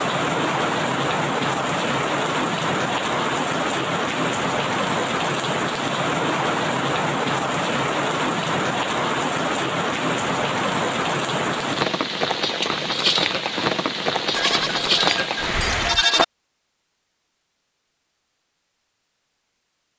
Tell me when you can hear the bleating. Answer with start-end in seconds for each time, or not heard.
14.3-16.2.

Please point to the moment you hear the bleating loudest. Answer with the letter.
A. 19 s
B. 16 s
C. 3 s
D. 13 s
B.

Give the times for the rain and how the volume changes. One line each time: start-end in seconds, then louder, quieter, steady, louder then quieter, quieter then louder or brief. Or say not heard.
0.0-16.0 steady.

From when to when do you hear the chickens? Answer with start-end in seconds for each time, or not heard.
not heard.